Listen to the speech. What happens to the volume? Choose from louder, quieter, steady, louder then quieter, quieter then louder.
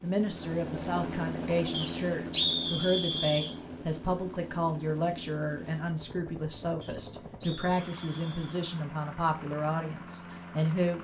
steady.